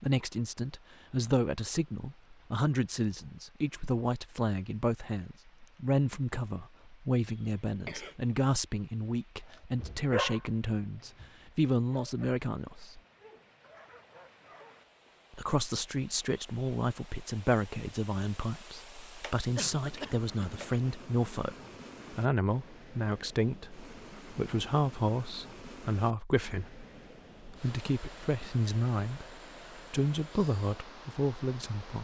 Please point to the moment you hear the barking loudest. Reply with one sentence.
The loudest moment of the barking is at 10 seconds.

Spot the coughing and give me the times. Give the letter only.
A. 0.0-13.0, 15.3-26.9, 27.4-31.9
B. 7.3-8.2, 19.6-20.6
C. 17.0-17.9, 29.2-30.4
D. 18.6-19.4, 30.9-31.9
B.